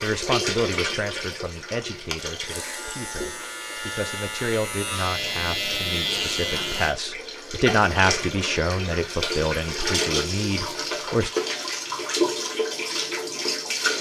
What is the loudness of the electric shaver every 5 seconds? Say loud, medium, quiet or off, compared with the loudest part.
medium, loud, off.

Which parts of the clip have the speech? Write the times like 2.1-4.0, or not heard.
0.0-11.3.